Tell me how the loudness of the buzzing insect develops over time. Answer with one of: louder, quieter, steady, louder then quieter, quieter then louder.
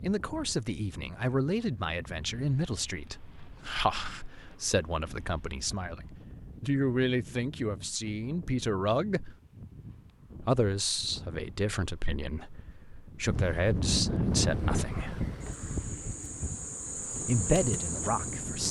louder.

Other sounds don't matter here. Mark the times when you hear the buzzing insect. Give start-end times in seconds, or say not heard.
14.3-18.6.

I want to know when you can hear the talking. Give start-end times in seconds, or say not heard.
0.0-9.3, 10.4-15.2, 17.2-18.6.